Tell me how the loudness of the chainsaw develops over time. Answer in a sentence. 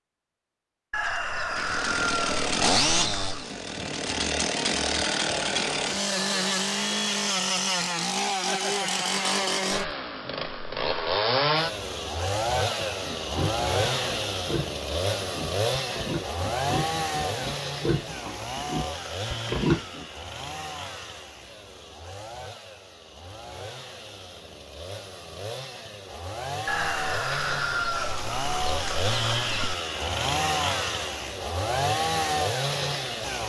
The loudness of the chainsaw goes down, then up.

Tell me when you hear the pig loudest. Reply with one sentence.
The volume of the pig peaks at 20 seconds.